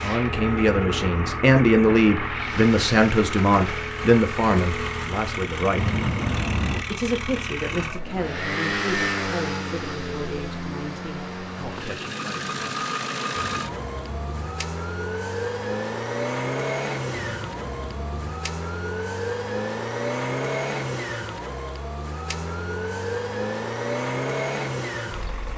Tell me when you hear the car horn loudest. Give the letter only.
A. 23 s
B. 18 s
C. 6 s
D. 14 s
C.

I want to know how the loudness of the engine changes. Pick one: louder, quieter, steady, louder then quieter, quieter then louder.
steady.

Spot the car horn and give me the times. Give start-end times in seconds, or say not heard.
5.8-6.8, 13.4-14.6, 17.1-18.4.